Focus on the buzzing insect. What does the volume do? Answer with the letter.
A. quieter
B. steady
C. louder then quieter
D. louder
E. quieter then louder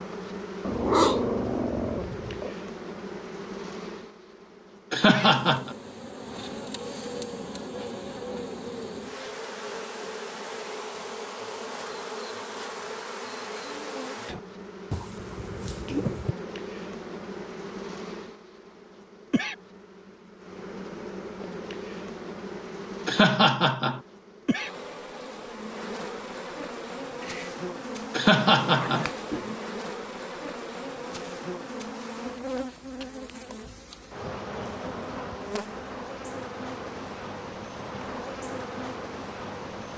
B.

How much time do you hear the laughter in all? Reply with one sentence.
The laughter can be heard for 3 seconds in total.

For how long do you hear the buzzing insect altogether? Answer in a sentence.
You can hear the buzzing insect for 40 seconds altogether.